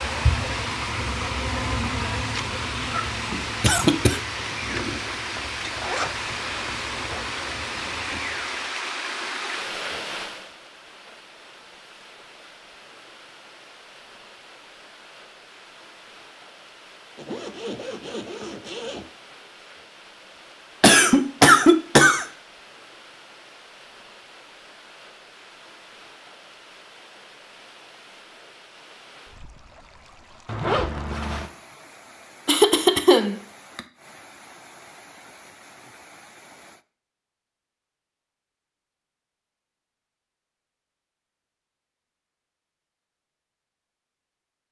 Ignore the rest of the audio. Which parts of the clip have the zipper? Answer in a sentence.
You can hear the zipper from 5.3 to 7.2 s, from 17.1 to 19.1 s and from 30.4 to 31.5 s.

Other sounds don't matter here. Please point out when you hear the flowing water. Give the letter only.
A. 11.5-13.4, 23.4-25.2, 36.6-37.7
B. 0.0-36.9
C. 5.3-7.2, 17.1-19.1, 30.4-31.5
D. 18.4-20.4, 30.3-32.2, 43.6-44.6
B.